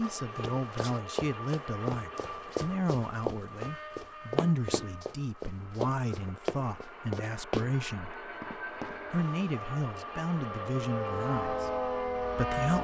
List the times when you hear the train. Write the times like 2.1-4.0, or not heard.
0.0-12.7.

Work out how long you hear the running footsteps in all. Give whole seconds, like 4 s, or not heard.
8 s.